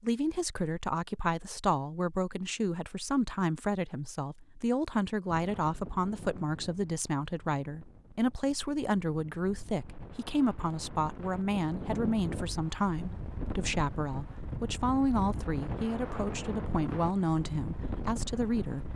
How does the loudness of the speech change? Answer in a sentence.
The loudness of the speech stays about the same.